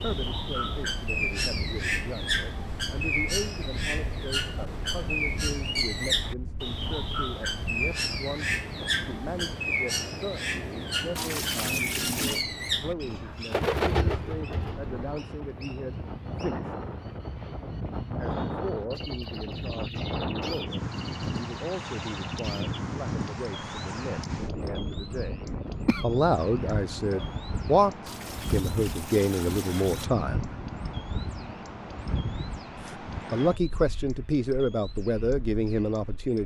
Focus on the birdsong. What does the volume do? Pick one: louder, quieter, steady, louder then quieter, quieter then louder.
quieter.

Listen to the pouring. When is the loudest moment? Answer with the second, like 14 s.
12 s.